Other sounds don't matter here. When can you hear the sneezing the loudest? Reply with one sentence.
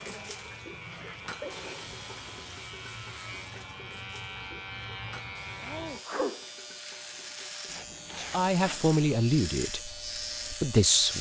The loudest moment of the sneezing is at 6 seconds.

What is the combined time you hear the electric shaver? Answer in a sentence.
The electric shaver can be heard for 11 seconds in total.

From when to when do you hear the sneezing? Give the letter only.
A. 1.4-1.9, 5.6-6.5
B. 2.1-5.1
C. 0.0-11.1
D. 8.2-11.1
A.